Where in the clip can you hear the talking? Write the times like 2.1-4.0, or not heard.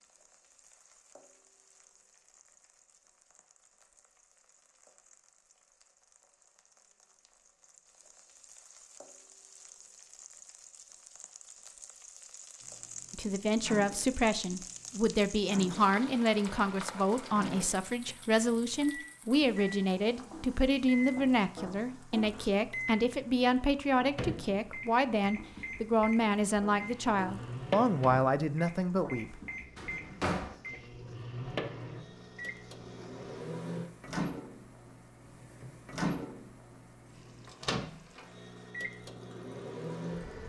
13.1-29.4.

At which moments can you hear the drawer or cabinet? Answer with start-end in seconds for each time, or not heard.
29.8-30.6.